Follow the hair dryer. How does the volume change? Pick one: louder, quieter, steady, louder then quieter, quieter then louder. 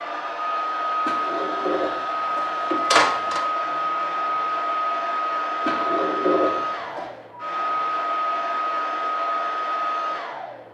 steady.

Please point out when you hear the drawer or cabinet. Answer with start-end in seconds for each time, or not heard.
1.1-3.5, 5.7-7.1.